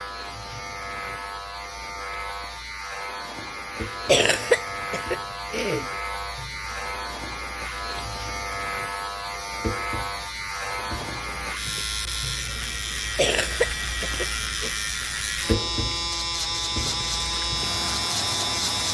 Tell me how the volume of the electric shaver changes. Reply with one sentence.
The loudness of the electric shaver goes up.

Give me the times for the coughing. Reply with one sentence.
You can hear the coughing from 4.0 to 5.8 s and from 13.2 to 14.7 s.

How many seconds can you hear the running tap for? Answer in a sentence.
The running tap can be heard for 19 seconds in total.